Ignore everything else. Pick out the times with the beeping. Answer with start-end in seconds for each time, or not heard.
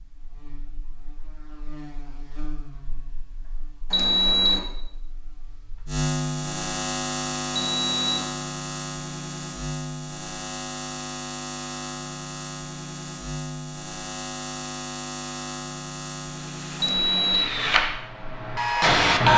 3.9-4.6, 7.5-8.2, 16.8-17.4.